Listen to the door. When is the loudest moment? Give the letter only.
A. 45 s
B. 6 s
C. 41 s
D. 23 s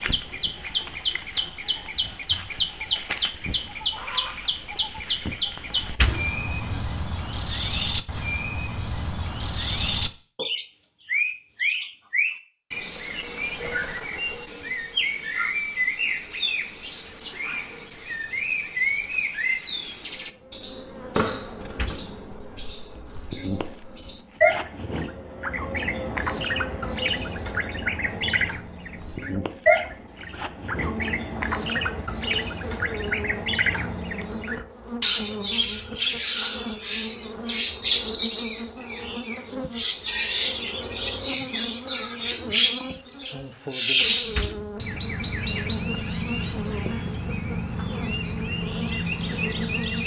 B.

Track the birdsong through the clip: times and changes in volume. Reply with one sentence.
You can hear the birdsong from 0.0 to 50.0 s, at a steady volume.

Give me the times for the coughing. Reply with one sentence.
You can't hear the coughing here.